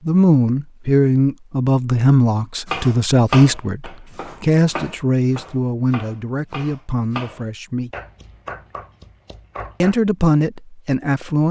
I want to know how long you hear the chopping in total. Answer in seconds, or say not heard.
7 s.